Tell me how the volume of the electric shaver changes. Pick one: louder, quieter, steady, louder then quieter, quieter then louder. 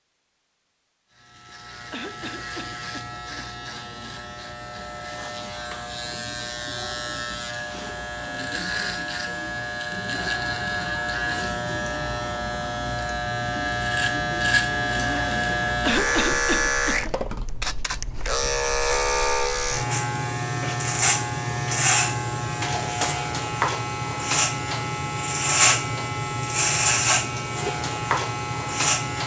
louder.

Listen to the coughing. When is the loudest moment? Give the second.
16 s.